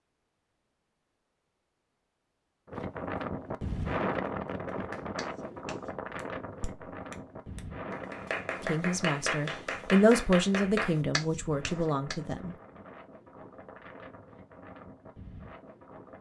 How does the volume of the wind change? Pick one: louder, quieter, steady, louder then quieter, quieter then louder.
quieter.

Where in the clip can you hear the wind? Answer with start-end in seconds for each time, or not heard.
2.6-16.1.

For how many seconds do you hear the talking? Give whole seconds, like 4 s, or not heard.
4 s.